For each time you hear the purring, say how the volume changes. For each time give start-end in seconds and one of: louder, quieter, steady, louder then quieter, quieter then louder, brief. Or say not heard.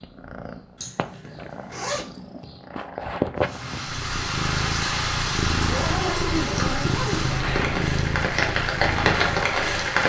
0.0-10.0 louder.